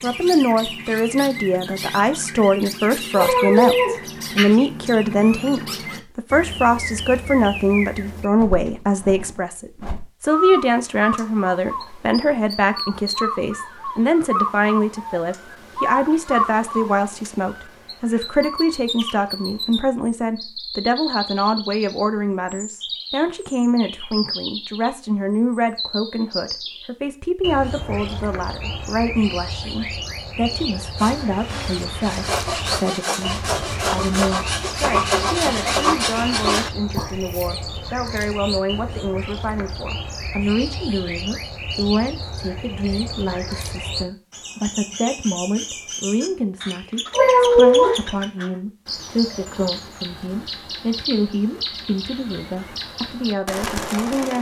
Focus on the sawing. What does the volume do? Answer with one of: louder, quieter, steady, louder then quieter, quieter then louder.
louder.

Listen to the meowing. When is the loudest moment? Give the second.
48 s.